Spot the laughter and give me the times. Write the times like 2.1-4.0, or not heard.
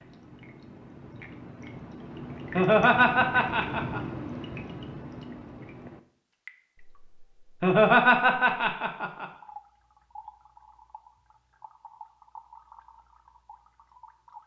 2.5-4.0, 7.6-9.2.